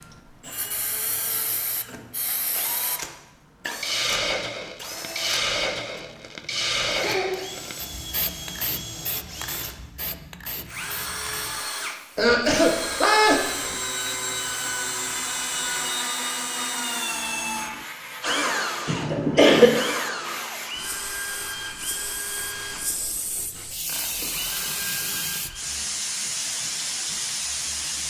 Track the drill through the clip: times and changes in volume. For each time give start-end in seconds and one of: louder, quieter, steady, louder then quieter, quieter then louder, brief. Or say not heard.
0.0-25.8 louder then quieter.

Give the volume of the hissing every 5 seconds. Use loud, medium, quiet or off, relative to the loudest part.
loud, loud, quiet, medium, medium, loud.